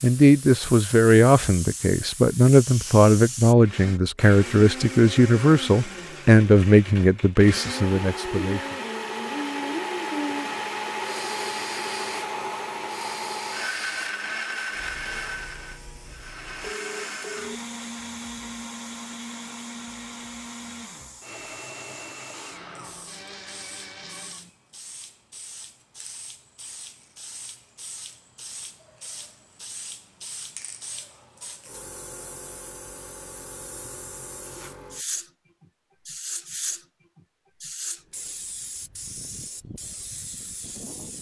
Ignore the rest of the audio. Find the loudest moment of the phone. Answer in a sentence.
The volume of the phone peaks at 17 seconds.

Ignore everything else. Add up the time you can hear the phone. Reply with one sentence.
You can hear the phone for 3 seconds altogether.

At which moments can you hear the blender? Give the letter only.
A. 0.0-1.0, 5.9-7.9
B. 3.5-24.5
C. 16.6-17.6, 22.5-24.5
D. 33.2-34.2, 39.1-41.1
B.